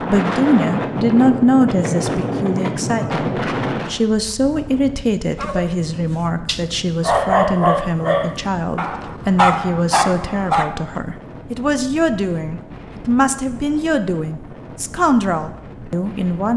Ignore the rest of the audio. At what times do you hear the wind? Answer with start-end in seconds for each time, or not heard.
0.0-16.5.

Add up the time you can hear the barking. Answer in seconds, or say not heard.
6 s.